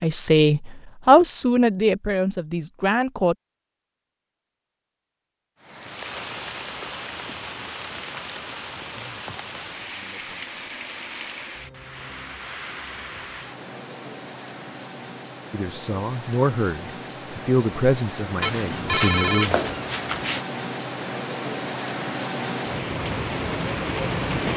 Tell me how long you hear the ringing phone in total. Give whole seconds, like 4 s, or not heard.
2 s.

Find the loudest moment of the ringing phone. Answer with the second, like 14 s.
19 s.